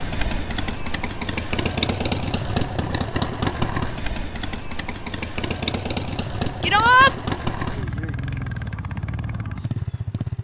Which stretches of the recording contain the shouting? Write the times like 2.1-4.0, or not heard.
6.6-7.2.